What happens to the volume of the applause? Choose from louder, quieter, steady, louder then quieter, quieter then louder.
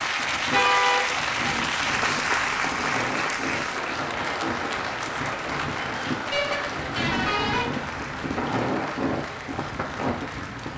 quieter.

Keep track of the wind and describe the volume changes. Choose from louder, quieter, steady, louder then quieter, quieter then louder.
louder.